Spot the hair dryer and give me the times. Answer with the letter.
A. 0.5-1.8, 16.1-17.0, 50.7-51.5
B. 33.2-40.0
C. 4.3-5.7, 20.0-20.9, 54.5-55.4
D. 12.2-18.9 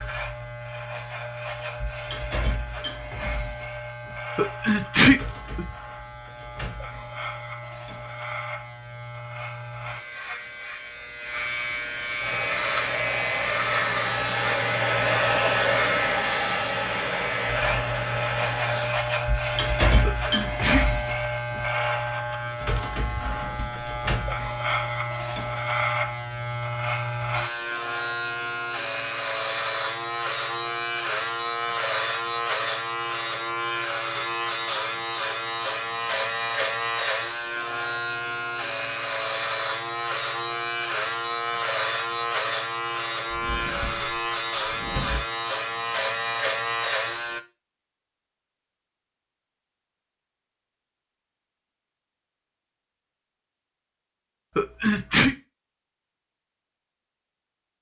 D.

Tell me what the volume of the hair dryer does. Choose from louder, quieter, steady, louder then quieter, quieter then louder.
louder then quieter.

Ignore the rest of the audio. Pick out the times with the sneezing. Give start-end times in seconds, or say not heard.
4.3-5.7, 20.0-20.9, 54.5-55.4.